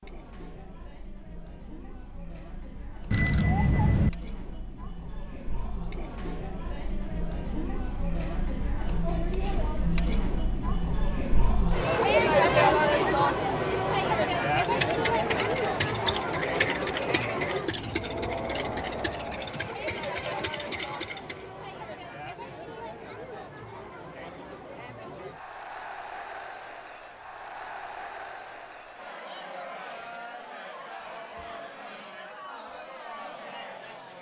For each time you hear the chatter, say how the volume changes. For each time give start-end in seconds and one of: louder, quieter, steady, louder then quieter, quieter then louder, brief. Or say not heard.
0.0-34.1 louder then quieter.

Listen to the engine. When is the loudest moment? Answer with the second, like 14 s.
16 s.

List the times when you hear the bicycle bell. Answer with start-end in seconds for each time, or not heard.
3.1-4.1.